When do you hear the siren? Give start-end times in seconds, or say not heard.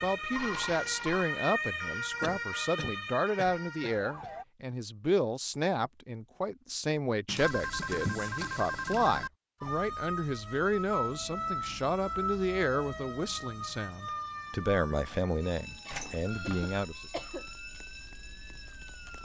0.0-4.5, 9.6-19.1.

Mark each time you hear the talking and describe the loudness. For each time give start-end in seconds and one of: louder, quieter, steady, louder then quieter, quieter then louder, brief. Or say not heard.
0.0-17.1 steady.